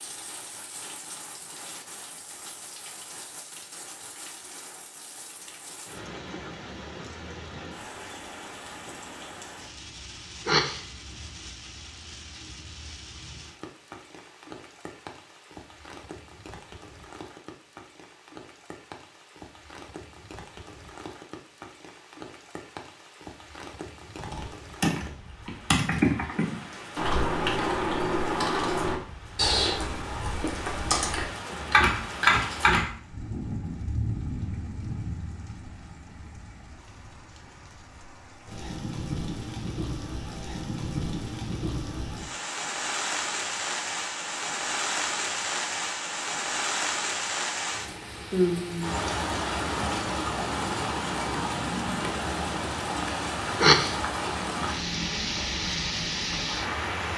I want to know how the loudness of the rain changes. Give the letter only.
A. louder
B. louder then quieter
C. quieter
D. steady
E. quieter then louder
A.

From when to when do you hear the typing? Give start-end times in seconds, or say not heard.
24.2-32.9.